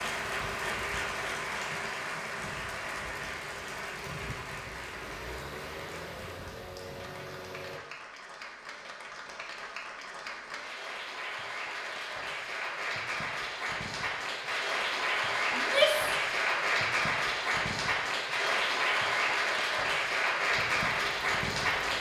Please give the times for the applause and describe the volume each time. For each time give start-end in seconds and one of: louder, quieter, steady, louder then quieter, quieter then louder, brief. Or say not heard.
0.0-21.9 quieter then louder.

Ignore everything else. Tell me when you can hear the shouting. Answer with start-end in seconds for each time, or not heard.
15.5-16.1.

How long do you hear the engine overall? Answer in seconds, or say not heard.
9 s.